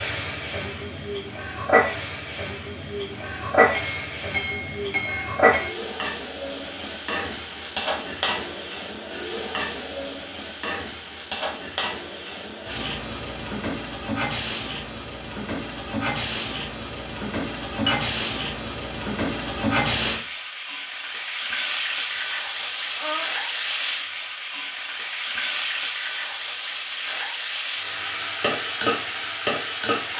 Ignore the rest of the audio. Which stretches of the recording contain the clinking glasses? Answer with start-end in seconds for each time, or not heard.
3.7-5.8, 22.1-23.2.